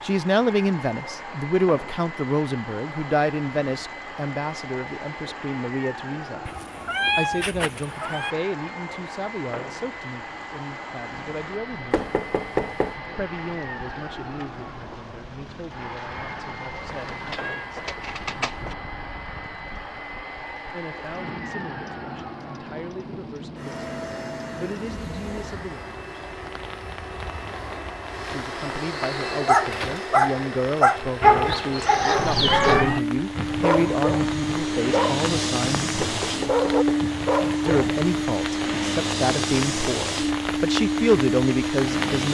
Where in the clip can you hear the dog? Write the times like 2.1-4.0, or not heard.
29.4-38.2.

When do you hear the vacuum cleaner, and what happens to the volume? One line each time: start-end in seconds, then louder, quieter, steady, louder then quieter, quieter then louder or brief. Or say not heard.
0.0-42.3 louder.